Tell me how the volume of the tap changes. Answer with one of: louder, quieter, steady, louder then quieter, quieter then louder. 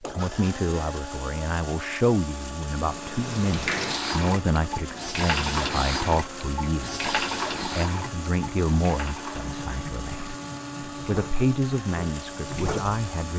quieter.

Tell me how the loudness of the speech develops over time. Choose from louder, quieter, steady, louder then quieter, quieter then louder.
steady.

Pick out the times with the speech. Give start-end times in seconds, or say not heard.
0.0-13.3.